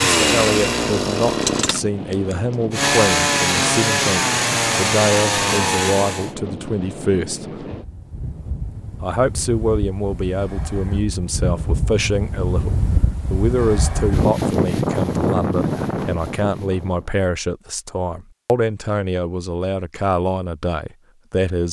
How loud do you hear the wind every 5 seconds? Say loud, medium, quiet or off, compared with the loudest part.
medium, medium, loud, loud, off.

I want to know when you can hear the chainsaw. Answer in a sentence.
The chainsaw can be heard from 0.0 to 6.3 s.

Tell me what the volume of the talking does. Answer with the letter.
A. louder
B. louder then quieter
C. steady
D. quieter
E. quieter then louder
C.